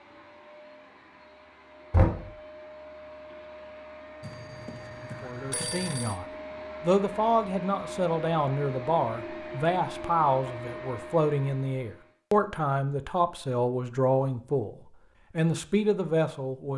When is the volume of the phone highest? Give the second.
6 s.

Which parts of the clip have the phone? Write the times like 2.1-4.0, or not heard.
4.2-6.2.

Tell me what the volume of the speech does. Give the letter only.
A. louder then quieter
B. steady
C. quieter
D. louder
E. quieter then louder
B.